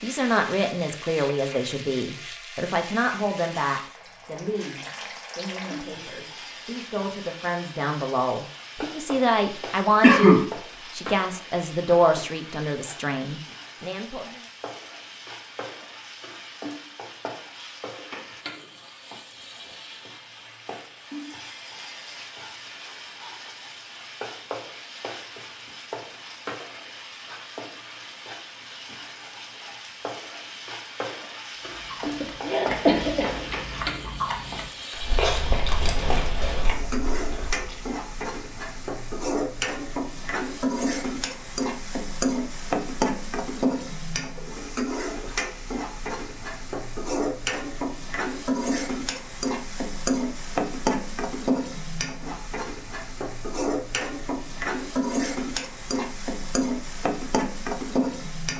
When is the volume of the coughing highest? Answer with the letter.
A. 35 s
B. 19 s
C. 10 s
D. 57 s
C.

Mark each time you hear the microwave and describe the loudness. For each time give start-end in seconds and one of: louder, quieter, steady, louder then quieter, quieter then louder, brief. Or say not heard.
not heard.